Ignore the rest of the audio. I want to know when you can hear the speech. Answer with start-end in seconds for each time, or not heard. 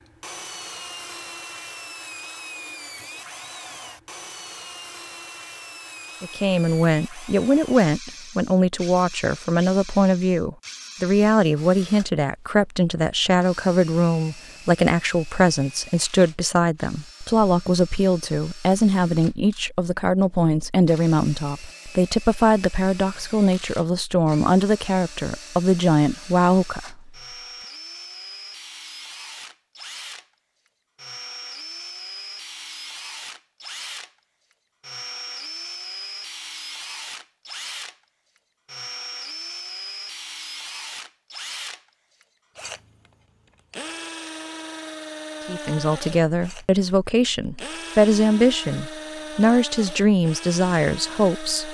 6.2-27.1, 45.5-51.6.